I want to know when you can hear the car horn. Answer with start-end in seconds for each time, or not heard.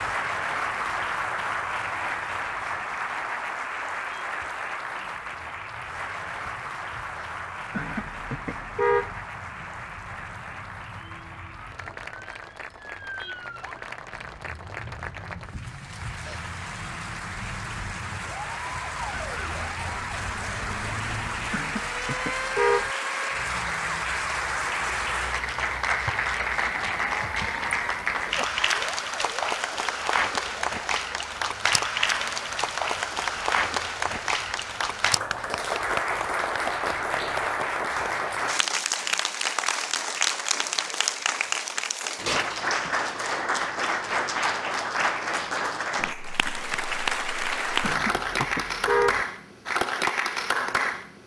7.7-9.2, 21.5-22.9, 47.8-49.2.